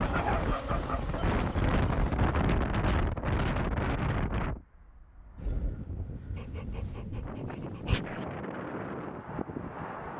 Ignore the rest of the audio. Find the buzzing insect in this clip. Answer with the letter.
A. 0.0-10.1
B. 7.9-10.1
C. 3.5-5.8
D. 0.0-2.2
D.